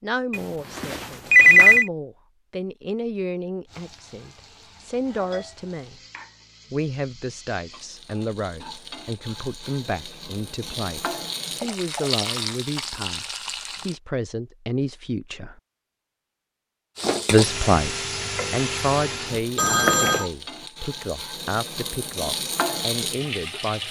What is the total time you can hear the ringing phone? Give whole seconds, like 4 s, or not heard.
2 s.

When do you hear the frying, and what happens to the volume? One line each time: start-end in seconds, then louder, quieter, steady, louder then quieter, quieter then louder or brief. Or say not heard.
3.6-14.0 louder
16.9-23.8 quieter then louder.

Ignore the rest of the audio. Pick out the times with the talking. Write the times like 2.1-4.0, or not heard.
0.0-6.0, 6.7-15.6, 17.3-23.8.